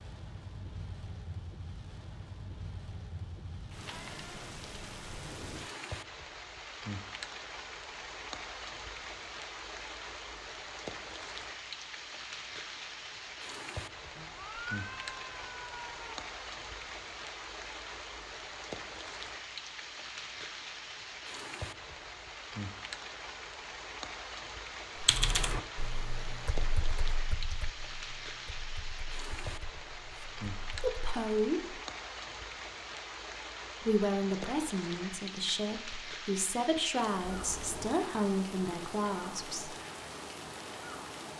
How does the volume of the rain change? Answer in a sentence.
The volume of the rain stays about the same.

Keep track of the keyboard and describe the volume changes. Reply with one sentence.
The loudness of the keyboard goes down.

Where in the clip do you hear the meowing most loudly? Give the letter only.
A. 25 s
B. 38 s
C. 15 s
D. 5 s
C.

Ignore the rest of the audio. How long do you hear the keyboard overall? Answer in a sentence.
You can hear the keyboard for 6 seconds altogether.